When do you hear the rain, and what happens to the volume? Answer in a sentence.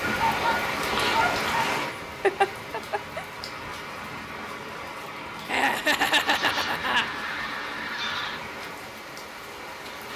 You can hear the rain from 0.0 to 10.1 s, getting quieter.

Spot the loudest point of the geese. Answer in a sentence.
The volume of the geese peaks at 1 second.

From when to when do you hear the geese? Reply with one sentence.
You can hear the geese from 0.0 to 1.9 s and from 6.2 to 8.4 s.